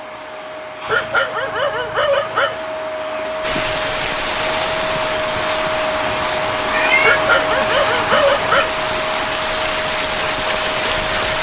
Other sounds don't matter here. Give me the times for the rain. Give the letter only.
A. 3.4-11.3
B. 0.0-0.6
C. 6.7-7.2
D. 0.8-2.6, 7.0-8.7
A.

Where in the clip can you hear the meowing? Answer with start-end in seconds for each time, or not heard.
6.7-7.2.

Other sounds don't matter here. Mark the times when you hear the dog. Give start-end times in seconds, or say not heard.
0.8-2.6, 7.0-8.7.